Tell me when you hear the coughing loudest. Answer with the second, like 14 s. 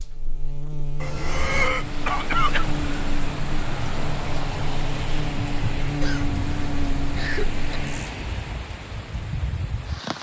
2 s.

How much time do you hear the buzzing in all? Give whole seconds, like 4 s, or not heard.
8 s.